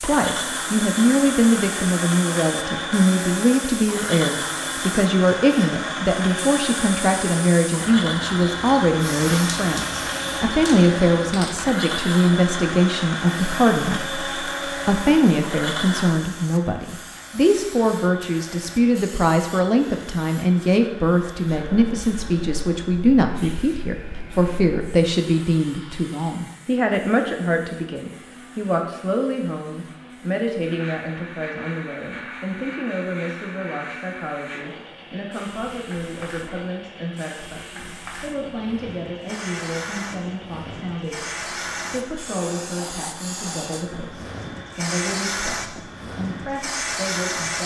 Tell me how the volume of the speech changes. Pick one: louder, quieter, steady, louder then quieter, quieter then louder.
quieter.